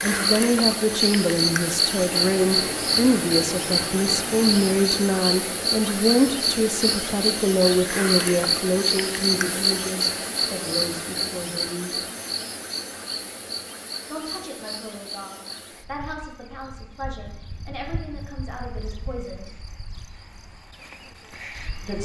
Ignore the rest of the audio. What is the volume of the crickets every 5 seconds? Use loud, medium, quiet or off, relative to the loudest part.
loud, loud, medium, quiet, quiet.